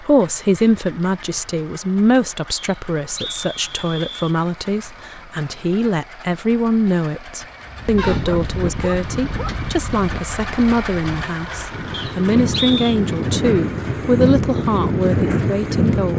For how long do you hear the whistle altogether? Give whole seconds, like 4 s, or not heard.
3 s.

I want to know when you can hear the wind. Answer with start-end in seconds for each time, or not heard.
7.7-16.1.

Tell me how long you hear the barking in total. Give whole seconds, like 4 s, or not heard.
2 s.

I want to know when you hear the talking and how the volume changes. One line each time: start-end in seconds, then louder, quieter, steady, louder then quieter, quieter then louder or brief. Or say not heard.
0.0-16.1 steady.